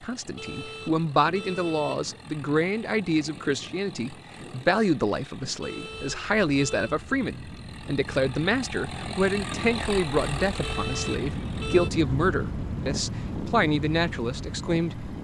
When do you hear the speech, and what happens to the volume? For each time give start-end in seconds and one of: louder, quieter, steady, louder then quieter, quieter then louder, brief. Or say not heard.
0.0-15.2 steady.